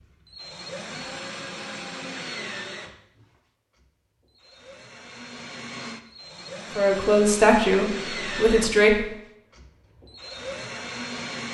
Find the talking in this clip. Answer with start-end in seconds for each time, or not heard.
6.8-9.1.